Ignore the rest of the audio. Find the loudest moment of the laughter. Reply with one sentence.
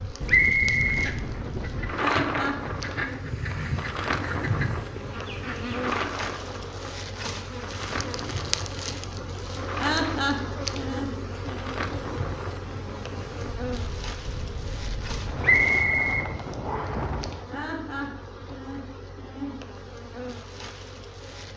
The loudest moment of the laughter is at 10 seconds.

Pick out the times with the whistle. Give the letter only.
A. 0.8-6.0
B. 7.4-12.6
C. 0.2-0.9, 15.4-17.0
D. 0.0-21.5
C.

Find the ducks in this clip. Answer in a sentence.
You can hear the ducks from 0.8 to 6.0 s.